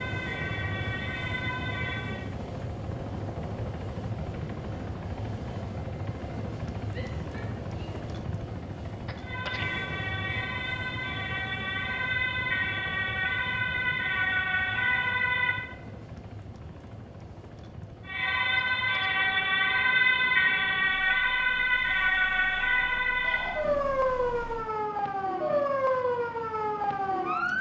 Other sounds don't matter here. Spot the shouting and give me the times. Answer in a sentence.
You can hear the shouting from 6.9 to 8.1 s and from 23.2 to 23.6 s.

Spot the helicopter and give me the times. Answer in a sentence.
You can hear the helicopter from 0.0 to 24.8 s.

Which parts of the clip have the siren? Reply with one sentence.
The siren can be heard from 0.0 to 2.3 s, from 9.2 to 15.8 s and from 18.1 to 27.5 s.